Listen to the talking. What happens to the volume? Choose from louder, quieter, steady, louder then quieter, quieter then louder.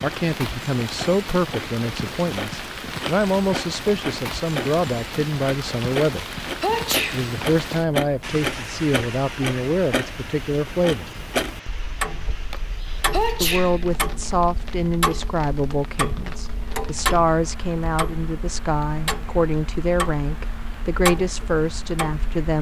steady.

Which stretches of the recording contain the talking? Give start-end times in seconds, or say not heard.
0.0-6.2, 7.1-11.2, 13.4-22.5.